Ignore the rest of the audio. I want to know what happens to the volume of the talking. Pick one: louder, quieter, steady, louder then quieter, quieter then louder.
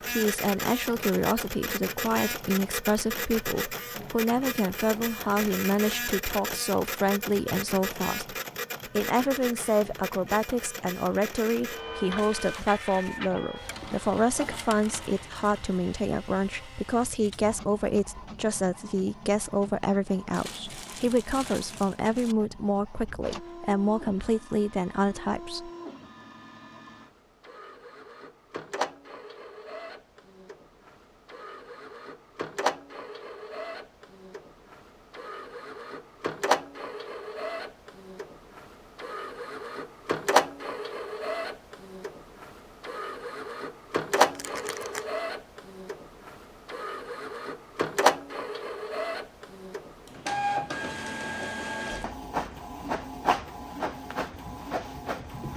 steady.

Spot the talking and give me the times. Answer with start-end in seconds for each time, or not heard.
0.1-8.3, 8.9-25.7.